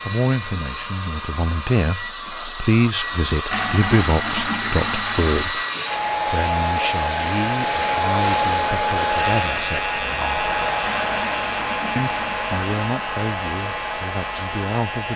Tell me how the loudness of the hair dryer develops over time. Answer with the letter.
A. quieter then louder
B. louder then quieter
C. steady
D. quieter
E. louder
B.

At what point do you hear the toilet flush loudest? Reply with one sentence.
The loudest moment of the toilet flush is at 4 seconds.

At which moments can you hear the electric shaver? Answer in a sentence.
The electric shaver can be heard from 5.0 to 15.1 s.